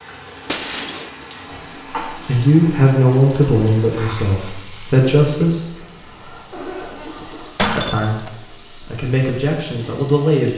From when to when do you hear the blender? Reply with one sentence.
The blender can't be heard in this clip.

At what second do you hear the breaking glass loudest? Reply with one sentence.
The loudest moment of the breaking glass is at 8 seconds.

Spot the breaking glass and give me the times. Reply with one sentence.
You can hear the breaking glass from 0.5 to 1.1 s and from 7.5 to 8.3 s.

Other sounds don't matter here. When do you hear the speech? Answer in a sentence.
The speech can be heard from 2.1 to 5.7 s and from 7.8 to 10.5 s.